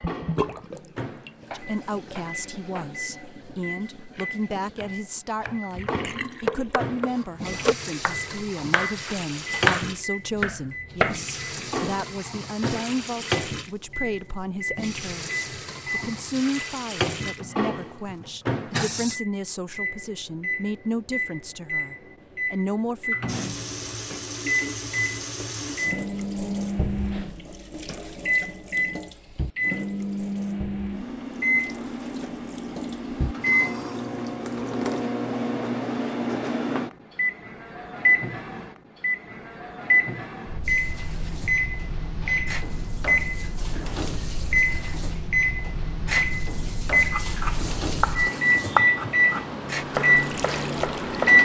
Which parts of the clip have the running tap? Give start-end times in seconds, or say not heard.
0.0-19.2, 23.2-35.0, 40.6-51.2.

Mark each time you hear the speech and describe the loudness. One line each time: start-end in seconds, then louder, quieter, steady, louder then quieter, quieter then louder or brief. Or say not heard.
1.6-23.1 steady.